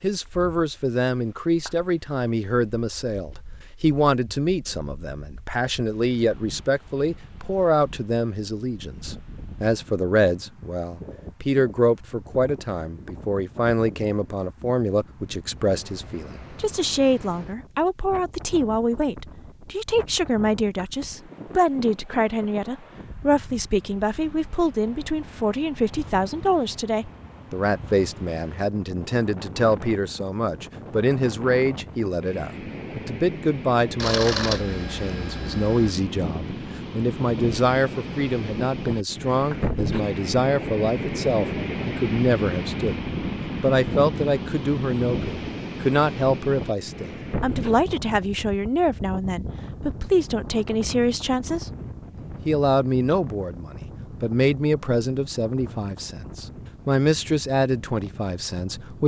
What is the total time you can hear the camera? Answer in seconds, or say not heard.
2 s.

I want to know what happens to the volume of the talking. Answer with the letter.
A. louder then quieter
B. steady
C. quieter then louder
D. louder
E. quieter
B.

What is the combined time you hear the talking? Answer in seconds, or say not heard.
58 s.